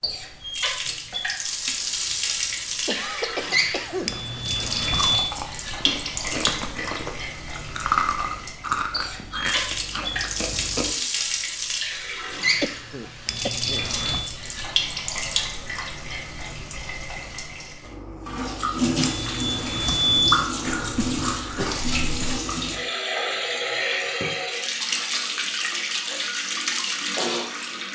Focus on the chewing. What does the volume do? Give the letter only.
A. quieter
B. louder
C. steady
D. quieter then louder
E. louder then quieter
E.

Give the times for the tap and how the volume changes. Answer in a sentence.
You can hear the tap from 0.0 to 27.9 s, at a steady volume.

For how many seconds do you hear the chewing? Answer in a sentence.
The chewing can be heard for 7 seconds in total.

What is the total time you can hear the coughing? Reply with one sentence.
You can hear the coughing for 6 seconds altogether.